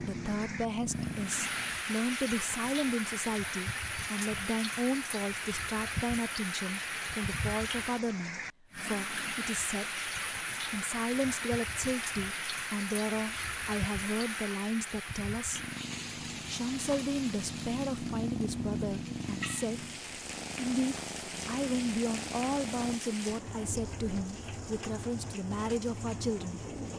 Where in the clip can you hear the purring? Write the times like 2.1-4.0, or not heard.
0.0-1.8, 15.5-23.0.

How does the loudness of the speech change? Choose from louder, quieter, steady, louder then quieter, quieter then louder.
steady.